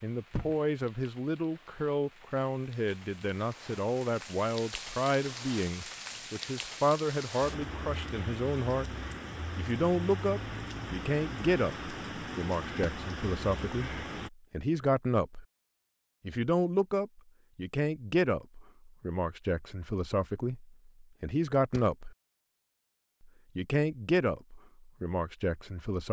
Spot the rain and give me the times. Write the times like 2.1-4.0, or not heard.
0.0-14.3.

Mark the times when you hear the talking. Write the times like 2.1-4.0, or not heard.
0.0-8.8, 9.6-15.4, 16.2-22.1, 23.6-26.0.